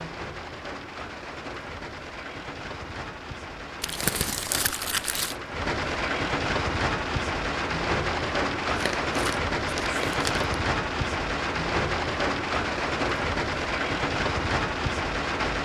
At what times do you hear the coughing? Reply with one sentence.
The coughing can't be heard in this clip.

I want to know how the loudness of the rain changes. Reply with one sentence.
The volume of the rain goes up.